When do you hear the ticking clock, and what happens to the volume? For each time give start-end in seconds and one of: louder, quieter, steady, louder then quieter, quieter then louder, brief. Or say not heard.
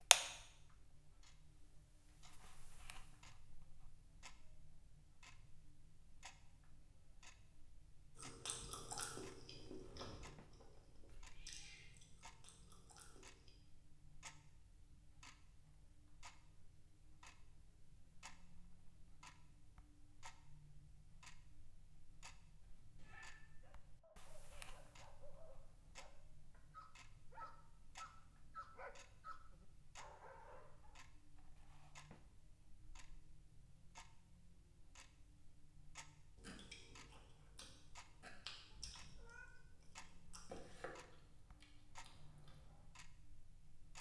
0.0-43.9 steady.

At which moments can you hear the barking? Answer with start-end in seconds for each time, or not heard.
23.1-31.0.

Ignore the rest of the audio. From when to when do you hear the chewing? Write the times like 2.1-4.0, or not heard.
8.2-13.5, 36.4-42.9.